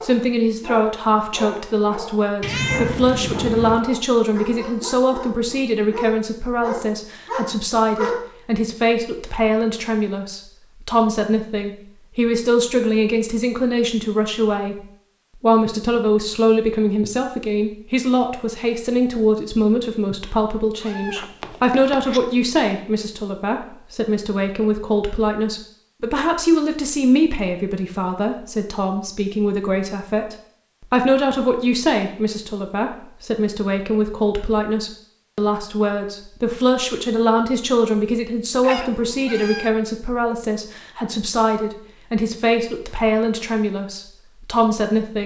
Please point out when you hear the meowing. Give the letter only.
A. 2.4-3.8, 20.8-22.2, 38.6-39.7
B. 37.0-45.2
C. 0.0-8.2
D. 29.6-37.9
A.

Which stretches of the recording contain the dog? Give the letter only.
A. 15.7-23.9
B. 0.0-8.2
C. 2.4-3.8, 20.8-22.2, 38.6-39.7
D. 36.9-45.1
B.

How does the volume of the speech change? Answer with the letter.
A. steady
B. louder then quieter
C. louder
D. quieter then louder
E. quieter
A.